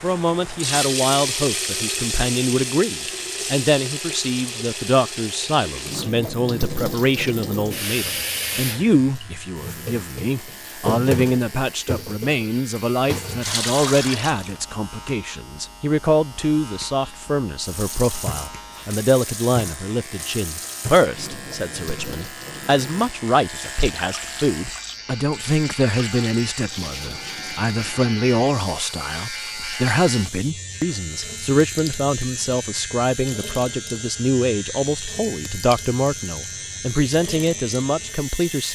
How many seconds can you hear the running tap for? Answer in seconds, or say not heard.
36 s.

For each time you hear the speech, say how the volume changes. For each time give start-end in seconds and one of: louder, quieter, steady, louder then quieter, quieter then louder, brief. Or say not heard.
0.0-38.6 steady.